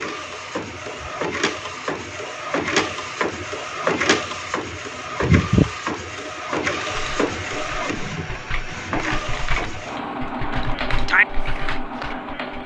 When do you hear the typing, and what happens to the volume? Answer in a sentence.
The typing can be heard from 6.9 to 12.6 s, getting louder.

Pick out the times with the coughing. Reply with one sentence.
You can't hear the coughing here.